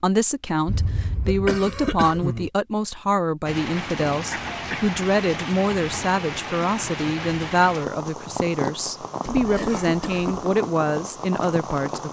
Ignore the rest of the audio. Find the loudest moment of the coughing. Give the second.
2 s.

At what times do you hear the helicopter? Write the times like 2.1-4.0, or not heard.
not heard.